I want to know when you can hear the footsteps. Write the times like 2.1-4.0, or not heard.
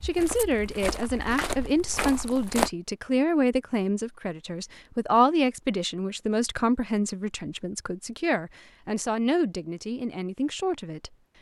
0.0-2.7.